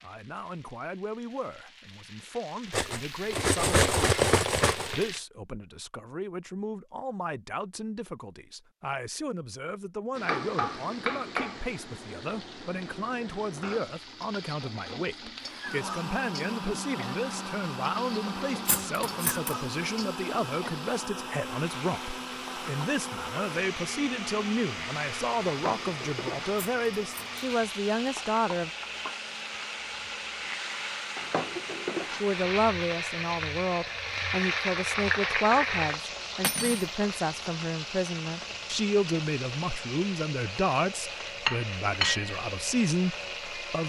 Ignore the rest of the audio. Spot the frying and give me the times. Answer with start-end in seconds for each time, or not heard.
0.0-5.2, 10.2-43.8.